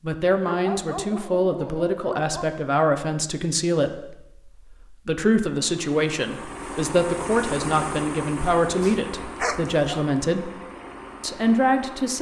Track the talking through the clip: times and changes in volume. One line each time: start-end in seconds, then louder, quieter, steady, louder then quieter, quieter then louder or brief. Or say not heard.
0.0-10.5 steady
11.2-12.1 brief.